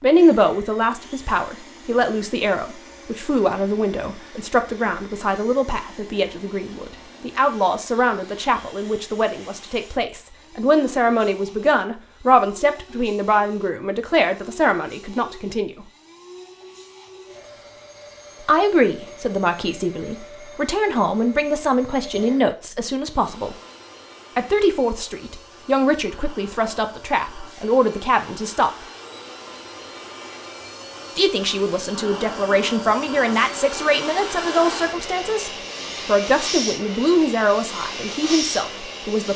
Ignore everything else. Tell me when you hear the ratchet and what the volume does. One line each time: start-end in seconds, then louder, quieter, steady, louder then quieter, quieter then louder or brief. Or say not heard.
not heard.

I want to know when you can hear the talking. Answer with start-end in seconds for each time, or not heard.
0.0-15.9, 18.4-23.6, 24.4-28.7, 31.1-39.3.